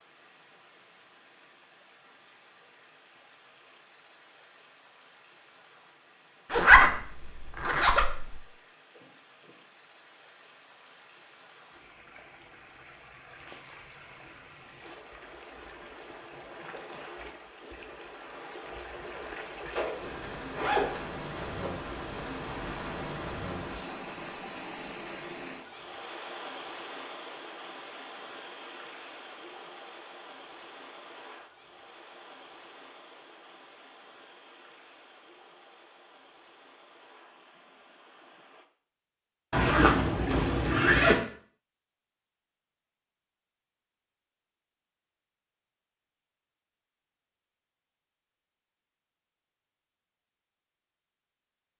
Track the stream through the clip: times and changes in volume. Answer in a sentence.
The stream can be heard from 0.0 to 38.6 s, getting louder then quieter.